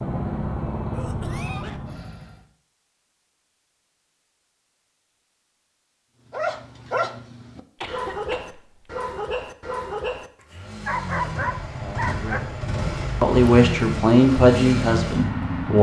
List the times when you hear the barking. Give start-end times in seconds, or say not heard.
6.3-12.4.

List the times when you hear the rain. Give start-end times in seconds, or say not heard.
not heard.